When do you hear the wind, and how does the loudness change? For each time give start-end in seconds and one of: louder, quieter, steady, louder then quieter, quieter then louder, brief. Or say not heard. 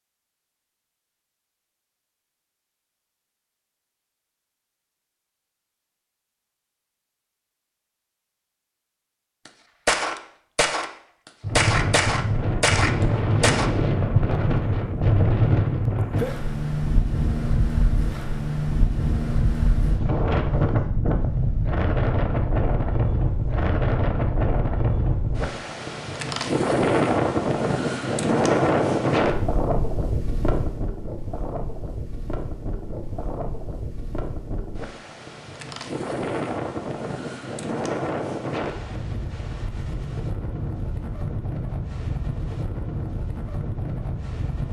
11.4-44.6 quieter.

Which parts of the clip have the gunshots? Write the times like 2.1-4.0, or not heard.
9.4-10.9, 11.6-13.7.